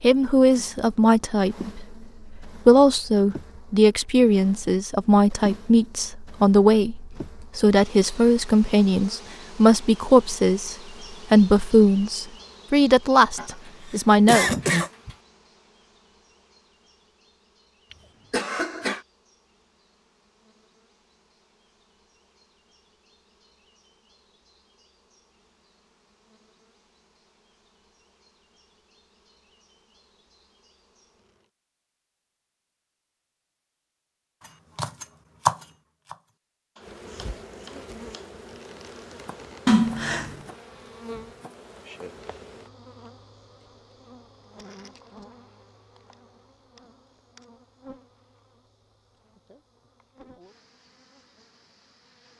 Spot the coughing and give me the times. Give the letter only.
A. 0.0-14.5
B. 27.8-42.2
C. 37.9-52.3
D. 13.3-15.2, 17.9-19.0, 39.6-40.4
D.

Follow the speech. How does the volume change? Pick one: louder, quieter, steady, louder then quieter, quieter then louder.
steady.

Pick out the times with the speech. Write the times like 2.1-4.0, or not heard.
0.0-14.5.